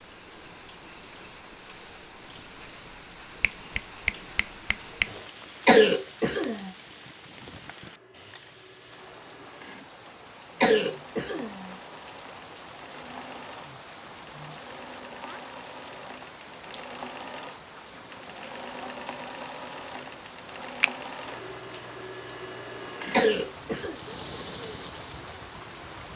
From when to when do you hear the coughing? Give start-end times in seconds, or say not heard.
5.7-6.7, 10.6-11.8, 23.1-23.9.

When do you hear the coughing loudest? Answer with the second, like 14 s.
6 s.